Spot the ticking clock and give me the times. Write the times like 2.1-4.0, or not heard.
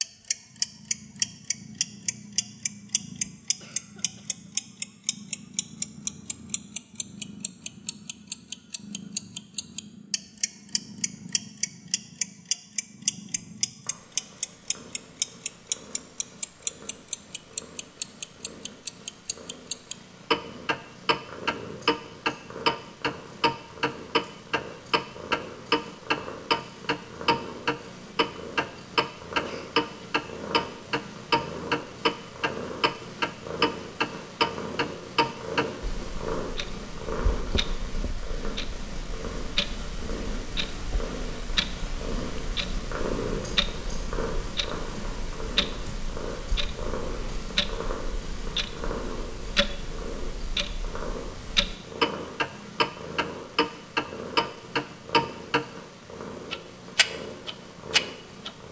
0.0-55.6, 56.5-58.5.